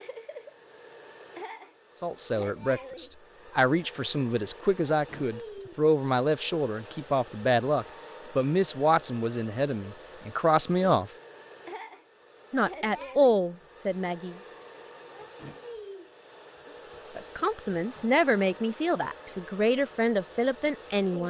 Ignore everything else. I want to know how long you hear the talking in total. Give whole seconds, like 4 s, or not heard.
15 s.